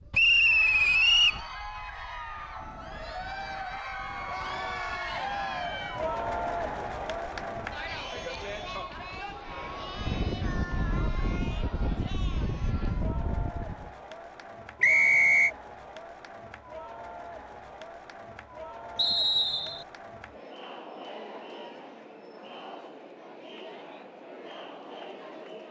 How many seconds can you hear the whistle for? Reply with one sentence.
The whistle can be heard for 3 seconds in total.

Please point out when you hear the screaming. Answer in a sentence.
You can hear the screaming from 4.2 to 5.8 s.